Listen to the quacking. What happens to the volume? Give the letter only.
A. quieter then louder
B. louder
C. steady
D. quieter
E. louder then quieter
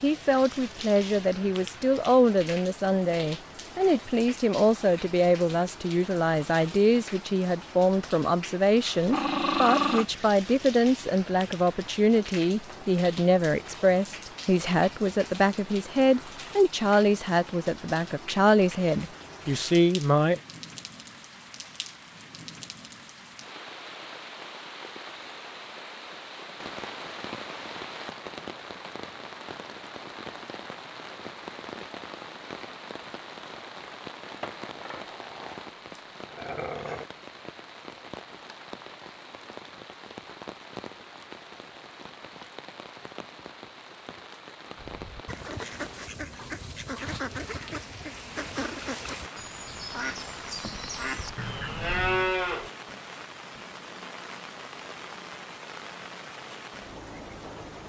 C.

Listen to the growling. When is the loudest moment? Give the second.
10 s.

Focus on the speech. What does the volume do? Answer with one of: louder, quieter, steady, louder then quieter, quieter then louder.
steady.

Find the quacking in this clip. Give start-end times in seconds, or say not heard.
44.8-52.3.